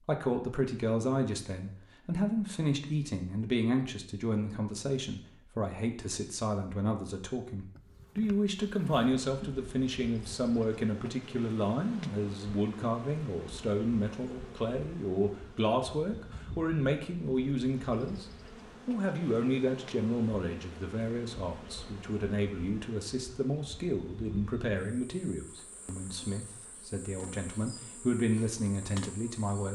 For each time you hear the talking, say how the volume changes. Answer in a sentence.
The talking can be heard from 0.0 to 29.6 s, at a steady volume.